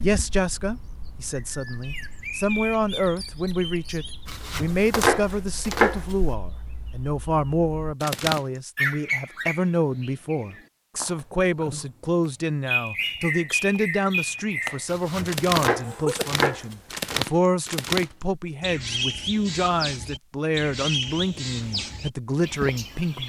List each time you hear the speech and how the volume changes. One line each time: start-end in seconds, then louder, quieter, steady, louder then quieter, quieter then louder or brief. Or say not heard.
0.0-23.2 steady.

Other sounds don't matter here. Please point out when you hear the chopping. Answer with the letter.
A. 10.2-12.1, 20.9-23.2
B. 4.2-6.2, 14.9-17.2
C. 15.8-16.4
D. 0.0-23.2
B.